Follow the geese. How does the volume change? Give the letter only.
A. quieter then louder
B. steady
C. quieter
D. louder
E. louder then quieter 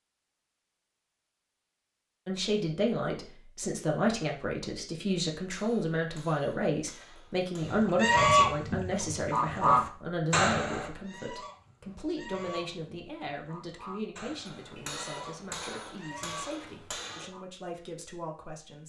C.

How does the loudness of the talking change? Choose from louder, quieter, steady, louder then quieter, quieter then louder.
quieter.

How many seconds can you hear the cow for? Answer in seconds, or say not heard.
not heard.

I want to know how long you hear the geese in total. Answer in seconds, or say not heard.
10 s.